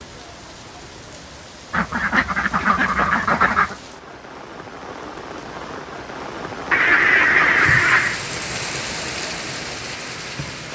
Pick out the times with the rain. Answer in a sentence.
The rain can be heard from 0.0 to 10.6 s.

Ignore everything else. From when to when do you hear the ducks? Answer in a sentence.
The ducks can be heard from 1.7 to 3.8 s and from 6.7 to 8.2 s.